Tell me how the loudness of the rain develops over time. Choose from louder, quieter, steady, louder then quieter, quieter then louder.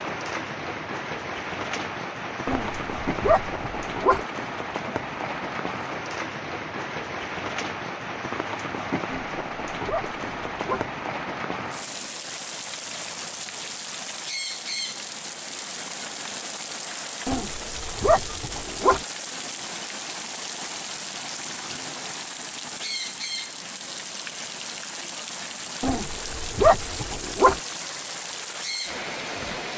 steady.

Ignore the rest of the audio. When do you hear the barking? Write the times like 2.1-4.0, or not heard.
2.5-4.2, 9.1-10.8, 17.2-19.0, 25.8-27.6.